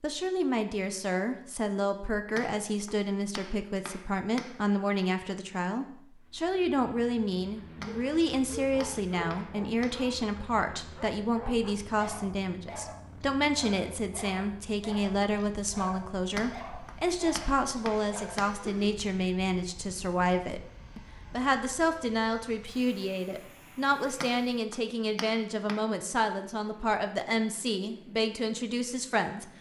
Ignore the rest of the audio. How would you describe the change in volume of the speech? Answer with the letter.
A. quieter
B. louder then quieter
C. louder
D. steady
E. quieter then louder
D.